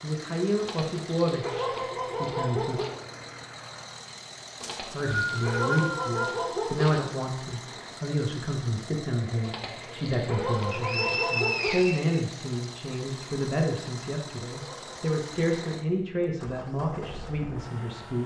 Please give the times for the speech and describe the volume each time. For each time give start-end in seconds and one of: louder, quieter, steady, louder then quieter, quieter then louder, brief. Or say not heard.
0.0-2.8 brief
4.8-18.2 steady.